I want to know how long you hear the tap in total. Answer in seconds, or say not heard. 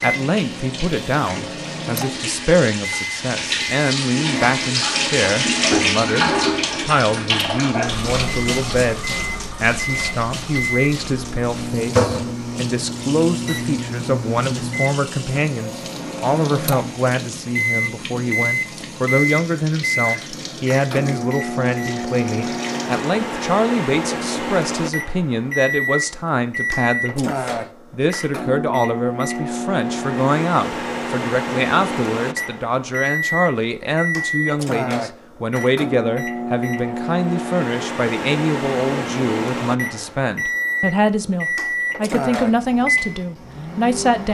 23 s.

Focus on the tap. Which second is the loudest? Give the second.
6 s.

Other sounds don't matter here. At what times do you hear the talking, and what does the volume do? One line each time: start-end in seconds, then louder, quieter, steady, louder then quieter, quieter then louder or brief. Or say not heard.
0.0-44.3 steady.